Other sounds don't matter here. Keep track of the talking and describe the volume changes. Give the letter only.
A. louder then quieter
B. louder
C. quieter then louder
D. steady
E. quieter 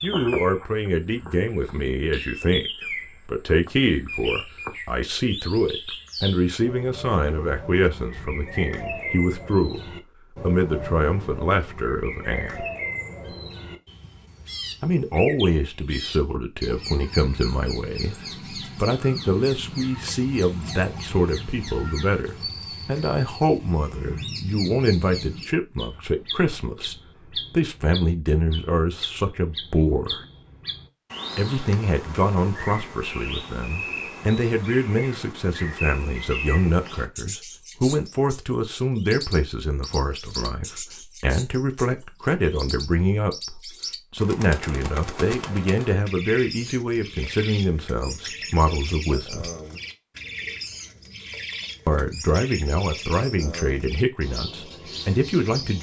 D.